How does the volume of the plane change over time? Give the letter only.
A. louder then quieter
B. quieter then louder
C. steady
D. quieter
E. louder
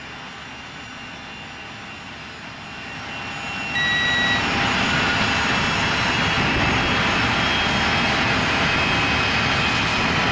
E.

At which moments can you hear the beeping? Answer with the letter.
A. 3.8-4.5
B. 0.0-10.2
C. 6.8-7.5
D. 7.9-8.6
A.